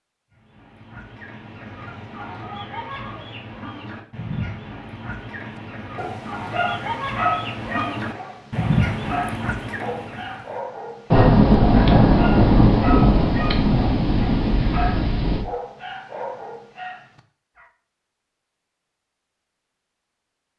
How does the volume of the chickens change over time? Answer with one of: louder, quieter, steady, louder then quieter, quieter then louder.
louder.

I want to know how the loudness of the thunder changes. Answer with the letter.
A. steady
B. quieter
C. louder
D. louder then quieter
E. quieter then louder
B.